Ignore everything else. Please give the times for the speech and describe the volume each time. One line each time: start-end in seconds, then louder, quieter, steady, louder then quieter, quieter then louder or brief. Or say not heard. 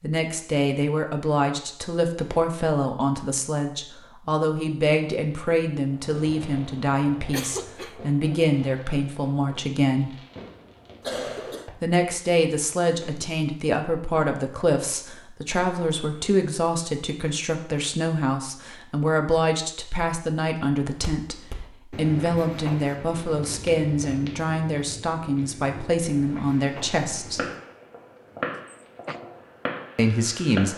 0.0-10.2 steady
11.8-27.4 steady
29.9-30.7 brief.